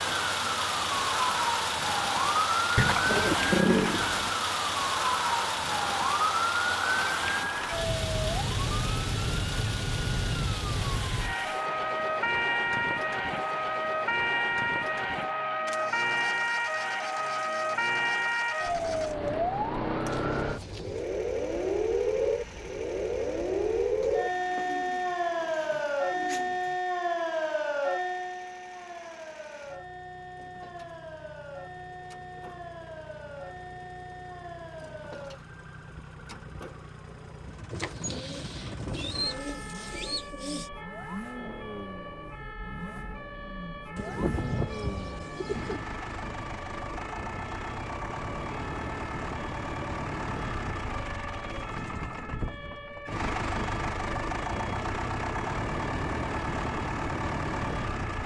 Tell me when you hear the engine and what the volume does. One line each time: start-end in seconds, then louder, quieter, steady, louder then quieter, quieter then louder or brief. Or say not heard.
0.0-58.2 quieter then louder.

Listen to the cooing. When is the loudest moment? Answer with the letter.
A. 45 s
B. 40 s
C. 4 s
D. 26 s
C.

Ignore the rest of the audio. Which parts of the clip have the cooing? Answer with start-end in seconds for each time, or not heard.
2.8-4.3, 24.0-26.8, 37.7-40.7, 44.0-45.8.